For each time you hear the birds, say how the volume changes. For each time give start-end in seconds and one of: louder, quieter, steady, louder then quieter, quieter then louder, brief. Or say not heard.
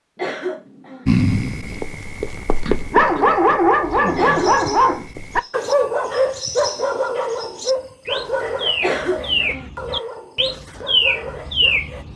3.8-12.1 louder.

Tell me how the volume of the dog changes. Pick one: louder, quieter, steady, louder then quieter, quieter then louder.
quieter.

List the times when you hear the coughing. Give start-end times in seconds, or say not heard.
0.1-1.1, 4.2-5.0, 8.8-9.7.